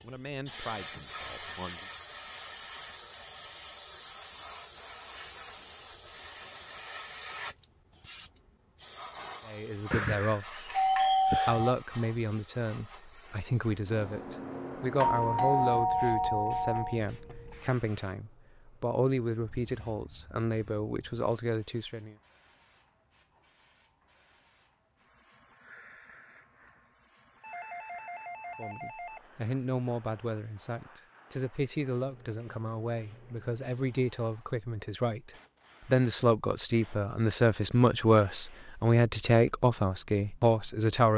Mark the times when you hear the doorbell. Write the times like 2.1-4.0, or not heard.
9.9-11.8, 14.9-17.0, 27.4-29.2.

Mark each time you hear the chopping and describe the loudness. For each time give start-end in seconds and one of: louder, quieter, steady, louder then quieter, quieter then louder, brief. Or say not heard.
not heard.